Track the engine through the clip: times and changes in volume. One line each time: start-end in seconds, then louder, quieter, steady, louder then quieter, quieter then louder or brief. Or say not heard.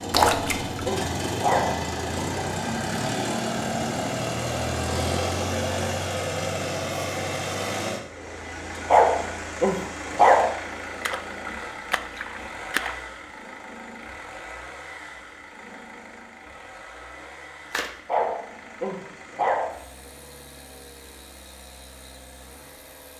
0.0-23.1 quieter.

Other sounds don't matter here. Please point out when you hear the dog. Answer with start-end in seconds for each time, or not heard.
0.1-1.8, 8.8-10.6, 18.1-19.8.